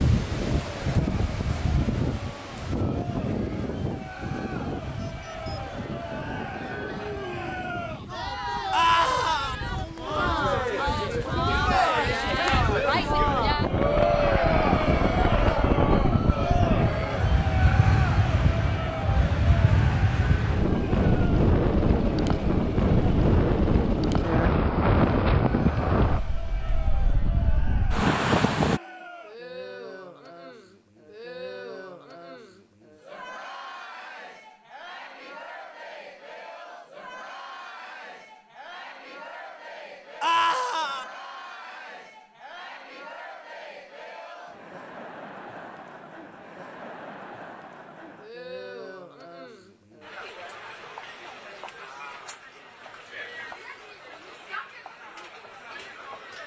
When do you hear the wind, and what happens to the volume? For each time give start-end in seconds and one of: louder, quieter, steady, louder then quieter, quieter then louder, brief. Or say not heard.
0.0-28.8 quieter then louder.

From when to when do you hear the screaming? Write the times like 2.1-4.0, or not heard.
8.7-9.6, 40.2-41.0.